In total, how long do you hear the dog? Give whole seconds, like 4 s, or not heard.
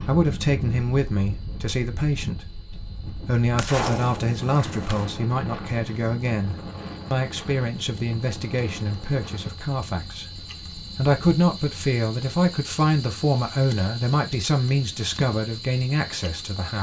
not heard.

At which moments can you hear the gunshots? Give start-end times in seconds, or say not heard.
3.5-5.1.